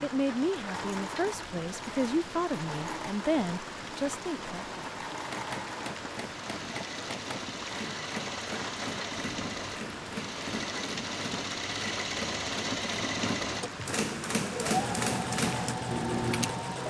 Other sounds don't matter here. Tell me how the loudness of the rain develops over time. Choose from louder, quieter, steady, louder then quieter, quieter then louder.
steady.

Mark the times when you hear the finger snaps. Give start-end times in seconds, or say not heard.
not heard.